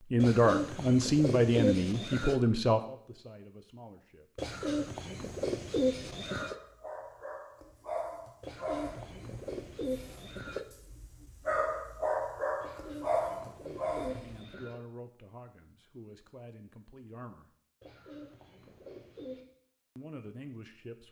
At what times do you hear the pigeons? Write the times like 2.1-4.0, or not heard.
0.2-2.4, 4.3-6.6, 8.4-10.7, 12.6-14.8, 17.8-19.4.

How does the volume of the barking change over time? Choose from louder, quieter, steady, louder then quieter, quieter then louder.
quieter then louder.